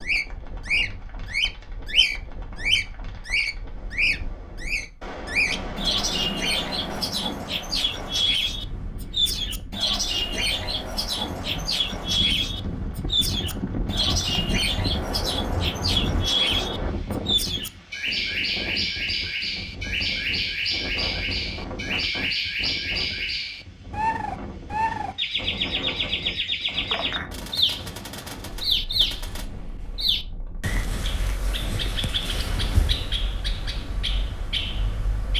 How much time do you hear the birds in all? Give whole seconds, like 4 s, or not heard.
35 s.